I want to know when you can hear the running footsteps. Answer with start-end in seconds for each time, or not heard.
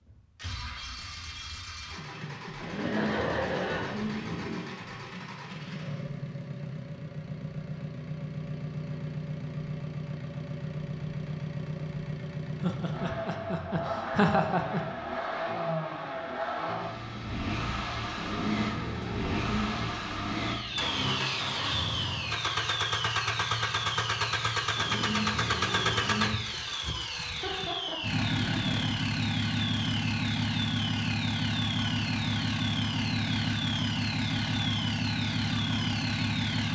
not heard.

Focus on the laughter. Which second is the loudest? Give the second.
14 s.